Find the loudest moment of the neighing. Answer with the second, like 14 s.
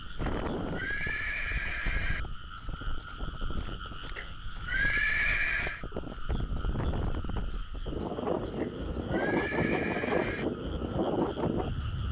5 s.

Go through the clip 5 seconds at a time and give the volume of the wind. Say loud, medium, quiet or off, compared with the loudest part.
medium, loud, loud.